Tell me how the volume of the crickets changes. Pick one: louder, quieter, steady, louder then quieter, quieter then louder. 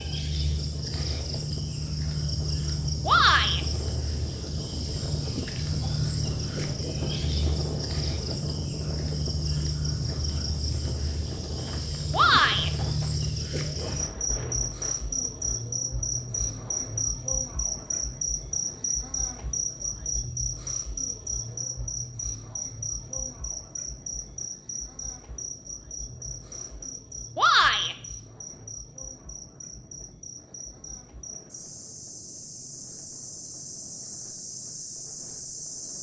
quieter.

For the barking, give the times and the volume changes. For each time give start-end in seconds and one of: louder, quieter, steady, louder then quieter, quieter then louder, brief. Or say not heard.
not heard.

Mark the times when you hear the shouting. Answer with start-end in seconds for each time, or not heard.
3.0-3.6, 12.1-12.7, 27.4-27.9.